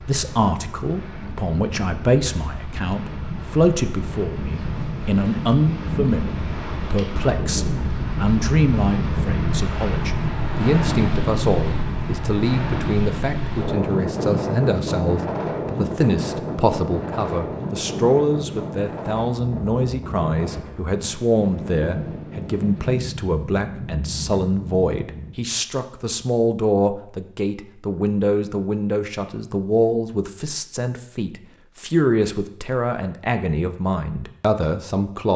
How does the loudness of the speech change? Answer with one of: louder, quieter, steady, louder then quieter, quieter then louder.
steady.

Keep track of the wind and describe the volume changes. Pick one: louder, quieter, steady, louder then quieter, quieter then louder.
louder then quieter.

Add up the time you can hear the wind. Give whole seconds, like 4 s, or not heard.
25 s.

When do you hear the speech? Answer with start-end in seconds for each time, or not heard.
0.0-35.3.